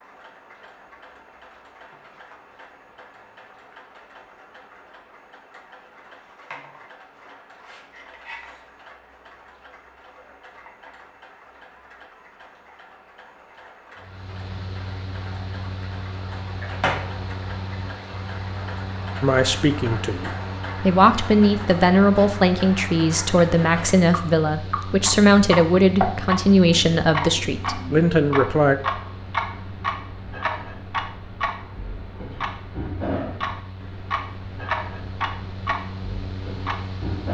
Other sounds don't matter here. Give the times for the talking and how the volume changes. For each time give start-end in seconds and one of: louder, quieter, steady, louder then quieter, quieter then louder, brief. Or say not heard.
19.2-28.8 steady.